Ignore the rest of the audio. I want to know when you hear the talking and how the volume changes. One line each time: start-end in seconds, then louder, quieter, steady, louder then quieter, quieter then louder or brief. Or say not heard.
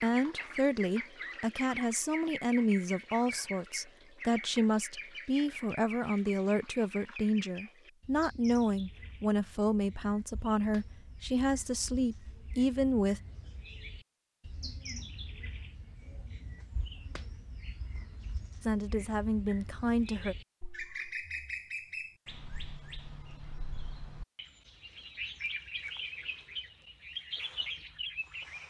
0.0-13.2 steady
18.6-20.4 brief.